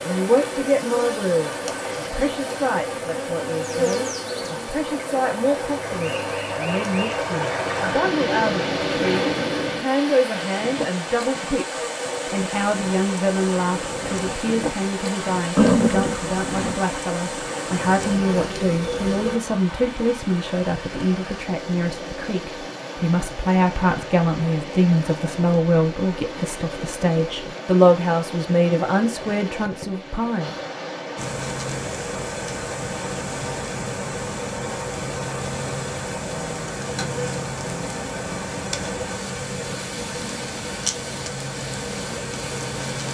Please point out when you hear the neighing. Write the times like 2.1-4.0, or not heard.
15.6-16.8.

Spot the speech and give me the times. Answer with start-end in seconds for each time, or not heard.
0.0-30.6.